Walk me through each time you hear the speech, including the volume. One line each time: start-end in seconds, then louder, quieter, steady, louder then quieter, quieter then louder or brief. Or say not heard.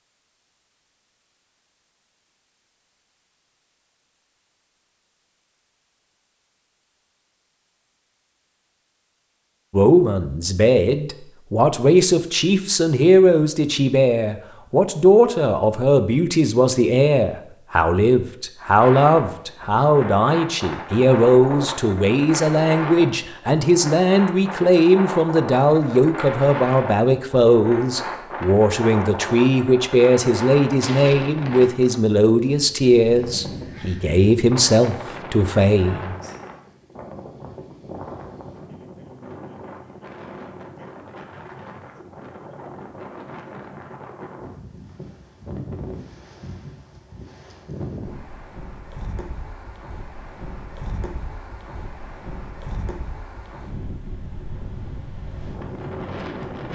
9.7-36.1 steady.